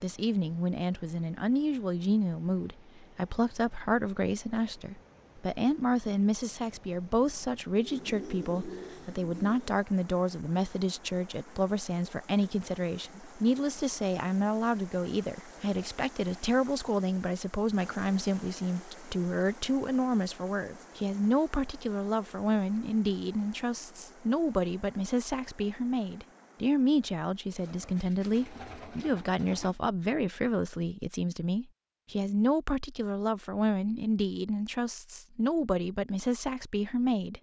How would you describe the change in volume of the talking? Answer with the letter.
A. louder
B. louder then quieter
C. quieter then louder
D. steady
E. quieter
D.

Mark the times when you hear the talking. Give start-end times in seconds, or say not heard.
0.0-37.3.